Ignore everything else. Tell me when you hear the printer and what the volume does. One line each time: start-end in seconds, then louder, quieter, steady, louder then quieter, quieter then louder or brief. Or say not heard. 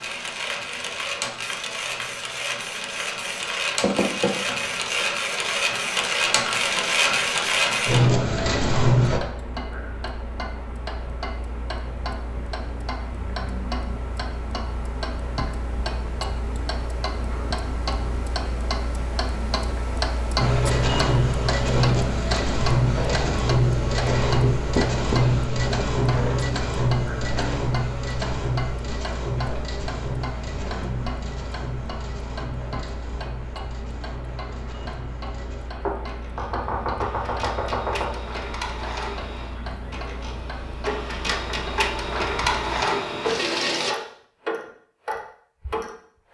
0.0-9.2 louder
20.4-44.0 quieter then louder.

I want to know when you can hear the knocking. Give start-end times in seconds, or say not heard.
3.8-5.0, 24.4-25.2, 35.8-38.2.